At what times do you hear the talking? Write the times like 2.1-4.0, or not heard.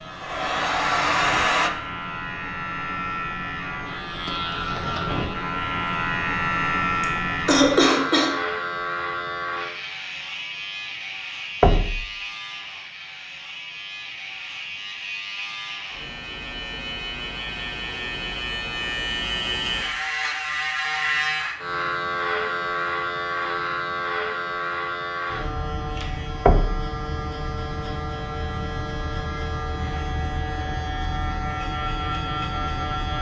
not heard.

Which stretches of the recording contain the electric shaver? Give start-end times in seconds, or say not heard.
0.0-33.1.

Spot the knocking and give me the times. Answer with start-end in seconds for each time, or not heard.
11.6-12.1, 26.4-26.9.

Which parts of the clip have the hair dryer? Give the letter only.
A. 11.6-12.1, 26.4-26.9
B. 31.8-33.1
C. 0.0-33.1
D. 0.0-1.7
D.